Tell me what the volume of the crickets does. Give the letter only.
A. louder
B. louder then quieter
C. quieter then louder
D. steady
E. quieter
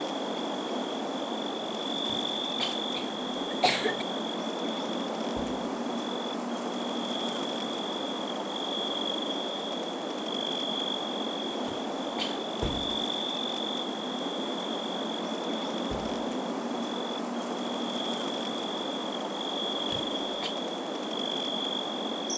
D.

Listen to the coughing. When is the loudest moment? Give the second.
4 s.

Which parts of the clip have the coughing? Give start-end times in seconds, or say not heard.
2.0-4.0, 11.7-12.4, 19.9-20.6.